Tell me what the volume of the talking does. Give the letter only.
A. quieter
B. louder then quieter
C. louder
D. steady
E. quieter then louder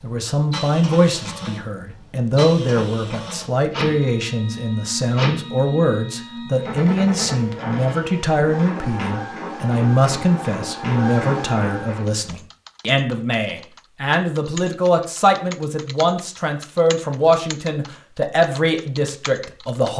D.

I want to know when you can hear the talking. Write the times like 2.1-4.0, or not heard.
0.0-19.9.